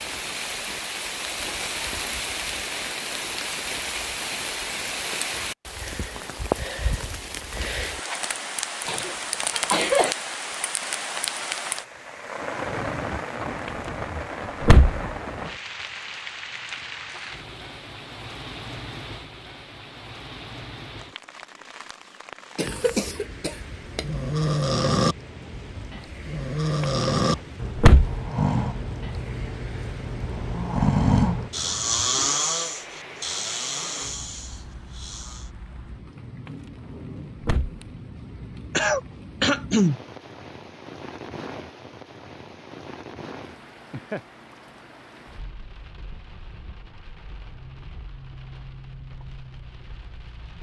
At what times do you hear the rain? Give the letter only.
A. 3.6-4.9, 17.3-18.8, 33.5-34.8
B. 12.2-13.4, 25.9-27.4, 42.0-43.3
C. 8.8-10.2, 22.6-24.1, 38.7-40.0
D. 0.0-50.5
D.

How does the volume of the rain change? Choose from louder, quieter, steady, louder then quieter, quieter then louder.
quieter.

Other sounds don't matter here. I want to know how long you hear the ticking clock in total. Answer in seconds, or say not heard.
not heard.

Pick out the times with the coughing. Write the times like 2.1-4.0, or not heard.
8.8-10.2, 22.6-24.1, 38.7-40.0.